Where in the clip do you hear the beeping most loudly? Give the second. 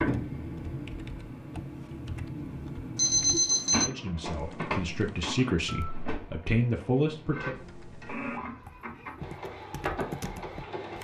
3 s.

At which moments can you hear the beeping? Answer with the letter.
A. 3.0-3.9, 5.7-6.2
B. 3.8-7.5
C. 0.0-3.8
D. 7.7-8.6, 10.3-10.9
A.